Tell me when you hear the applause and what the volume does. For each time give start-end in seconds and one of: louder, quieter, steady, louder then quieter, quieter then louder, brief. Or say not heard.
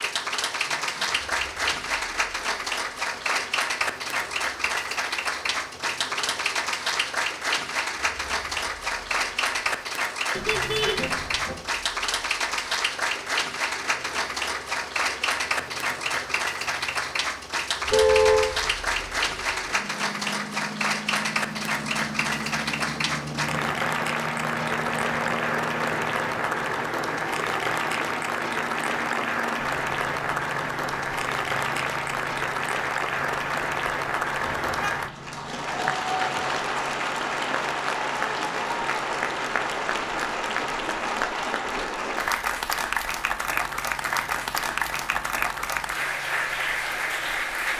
0.0-47.7 steady.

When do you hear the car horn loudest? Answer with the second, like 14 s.
18 s.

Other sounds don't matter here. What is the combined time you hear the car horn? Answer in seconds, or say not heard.
2 s.